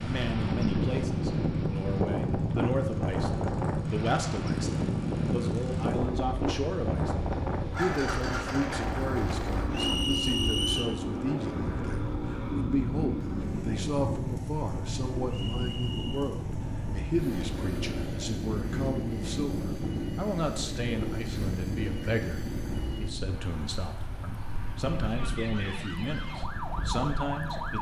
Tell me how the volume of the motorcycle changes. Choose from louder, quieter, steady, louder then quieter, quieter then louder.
quieter.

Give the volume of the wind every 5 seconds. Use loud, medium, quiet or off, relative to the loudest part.
loud, loud, loud, loud, medium, medium.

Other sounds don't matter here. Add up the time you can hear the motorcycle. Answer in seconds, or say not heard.
28 s.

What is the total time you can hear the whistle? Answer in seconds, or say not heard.
2 s.